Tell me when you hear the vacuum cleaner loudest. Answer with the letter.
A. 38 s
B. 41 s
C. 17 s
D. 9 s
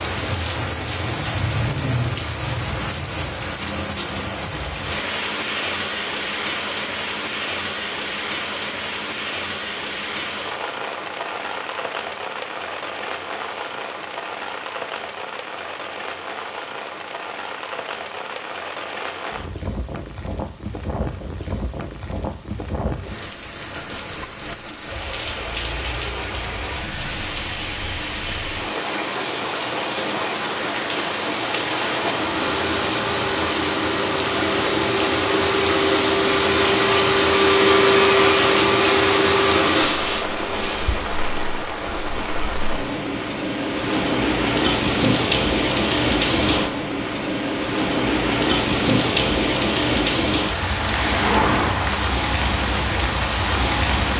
A.